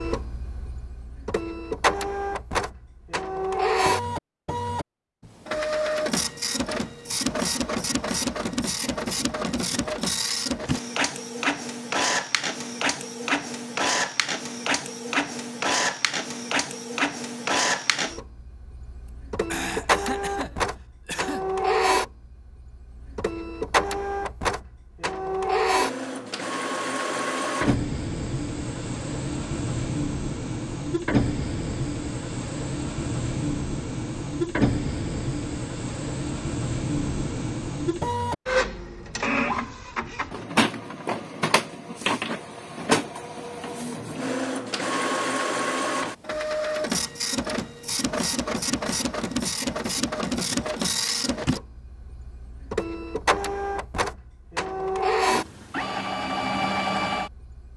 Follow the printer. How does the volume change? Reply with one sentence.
The loudness of the printer stays about the same.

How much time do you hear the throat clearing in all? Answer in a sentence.
The throat clearing can be heard for 2 seconds in total.